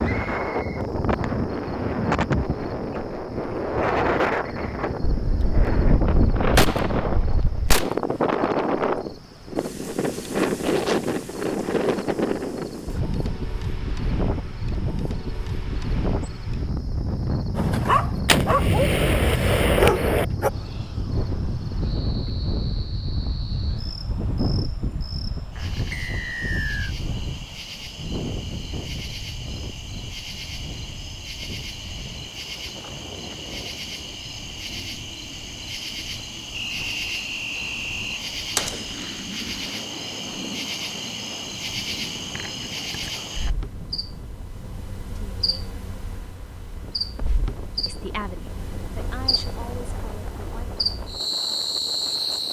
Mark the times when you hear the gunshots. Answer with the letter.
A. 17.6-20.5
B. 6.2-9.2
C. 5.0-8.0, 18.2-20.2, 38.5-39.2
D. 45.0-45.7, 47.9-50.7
C.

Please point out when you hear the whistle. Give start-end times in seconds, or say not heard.
0.2-0.7, 25.9-26.9, 36.5-38.2.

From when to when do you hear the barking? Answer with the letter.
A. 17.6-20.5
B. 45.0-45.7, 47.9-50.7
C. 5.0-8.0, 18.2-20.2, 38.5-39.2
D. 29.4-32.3
A.